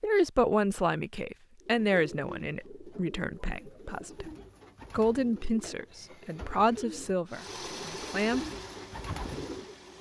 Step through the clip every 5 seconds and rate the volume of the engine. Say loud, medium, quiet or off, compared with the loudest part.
off, loud.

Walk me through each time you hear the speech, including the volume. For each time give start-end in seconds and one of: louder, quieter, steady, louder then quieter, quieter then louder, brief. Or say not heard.
0.0-8.4 quieter then louder.